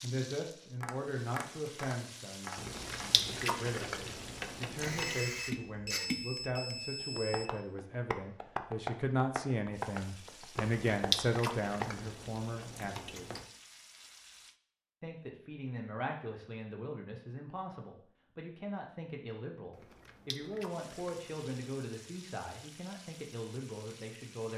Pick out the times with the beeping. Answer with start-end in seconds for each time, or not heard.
4.8-7.5.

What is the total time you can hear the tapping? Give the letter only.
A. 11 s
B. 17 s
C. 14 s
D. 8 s
A.